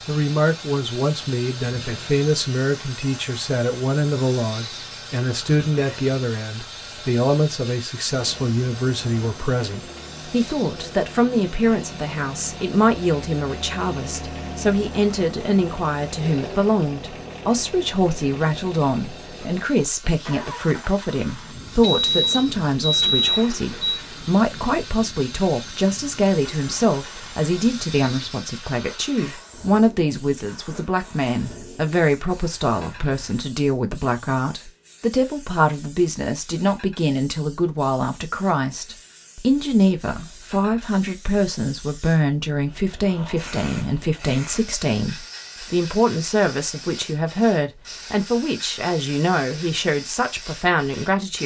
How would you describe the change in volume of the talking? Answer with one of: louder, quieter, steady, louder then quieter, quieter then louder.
steady.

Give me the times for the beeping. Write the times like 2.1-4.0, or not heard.
21.8-24.0.